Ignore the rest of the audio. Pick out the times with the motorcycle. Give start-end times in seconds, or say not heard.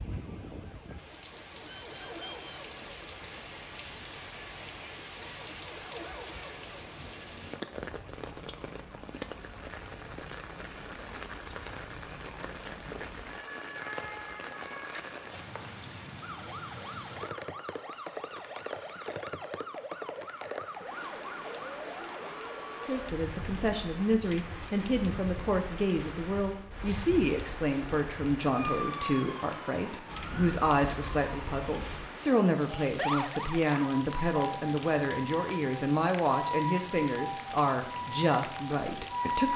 not heard.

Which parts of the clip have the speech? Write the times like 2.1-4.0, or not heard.
22.8-39.5.